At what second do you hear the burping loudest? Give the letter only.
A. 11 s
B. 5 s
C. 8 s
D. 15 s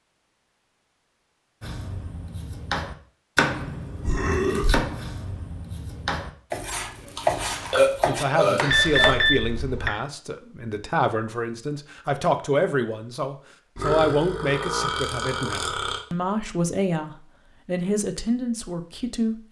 C.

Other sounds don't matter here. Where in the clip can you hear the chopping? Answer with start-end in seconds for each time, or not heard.
1.6-9.3.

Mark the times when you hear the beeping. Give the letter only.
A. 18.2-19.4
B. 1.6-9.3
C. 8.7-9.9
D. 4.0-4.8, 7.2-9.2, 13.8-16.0
C.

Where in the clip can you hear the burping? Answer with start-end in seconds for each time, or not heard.
4.0-4.8, 7.2-9.2, 13.8-16.0.